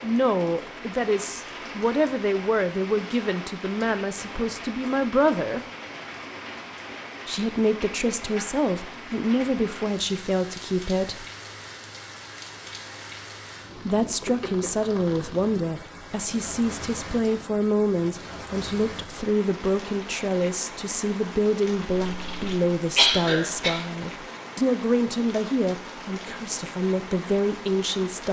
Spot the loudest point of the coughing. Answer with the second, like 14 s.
23 s.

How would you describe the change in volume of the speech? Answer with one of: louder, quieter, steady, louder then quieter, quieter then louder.
steady.